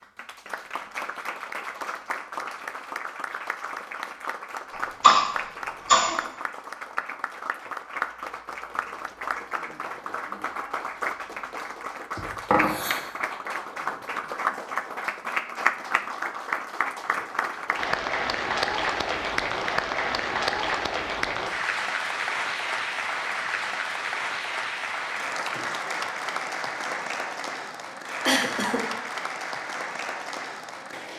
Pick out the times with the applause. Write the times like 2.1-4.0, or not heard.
0.0-31.1.